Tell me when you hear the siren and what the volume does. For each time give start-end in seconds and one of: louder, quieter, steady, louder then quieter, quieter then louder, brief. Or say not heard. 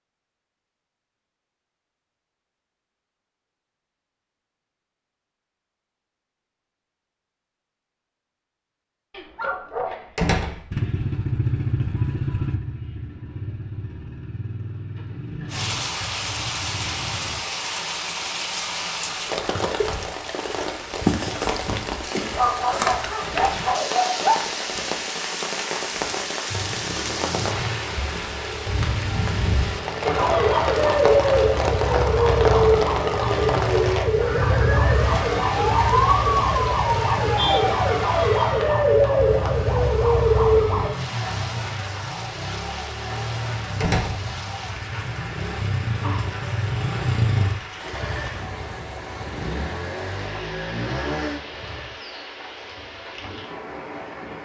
30.0-40.9 steady.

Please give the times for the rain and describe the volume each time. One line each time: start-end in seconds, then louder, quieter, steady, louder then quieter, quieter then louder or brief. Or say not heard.
15.4-54.4 quieter.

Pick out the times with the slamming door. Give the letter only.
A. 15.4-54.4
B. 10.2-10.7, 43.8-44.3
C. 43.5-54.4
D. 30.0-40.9
B.